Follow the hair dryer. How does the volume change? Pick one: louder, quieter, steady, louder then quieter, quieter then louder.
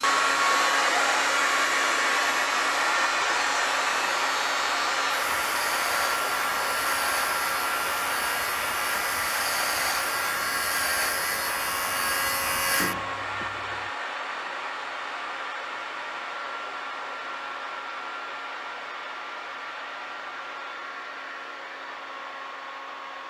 quieter.